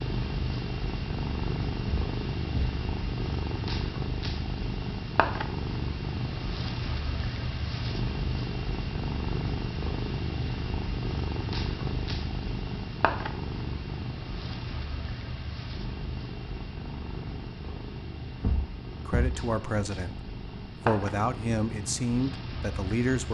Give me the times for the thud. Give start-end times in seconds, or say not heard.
1.9-2.8, 18.4-19.4.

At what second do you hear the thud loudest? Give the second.
19 s.